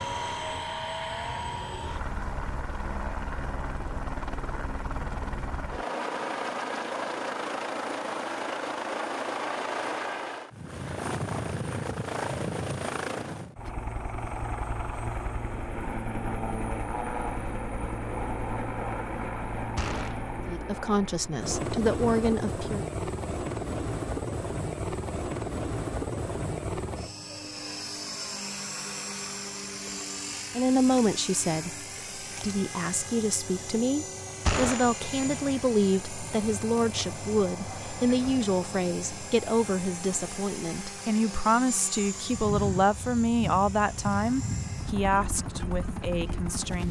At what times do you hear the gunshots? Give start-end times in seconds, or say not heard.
19.8-20.2, 34.5-34.9.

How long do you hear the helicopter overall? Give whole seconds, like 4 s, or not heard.
47 s.